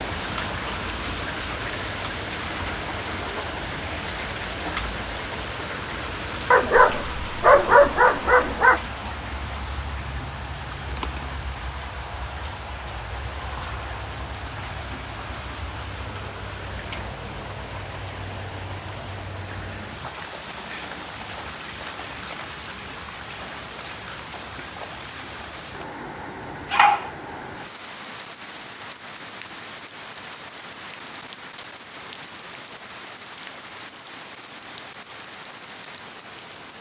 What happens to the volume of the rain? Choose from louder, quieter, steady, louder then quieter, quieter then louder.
quieter.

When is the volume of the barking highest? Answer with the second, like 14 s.
8 s.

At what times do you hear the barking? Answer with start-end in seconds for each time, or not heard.
6.5-8.8, 26.6-27.1.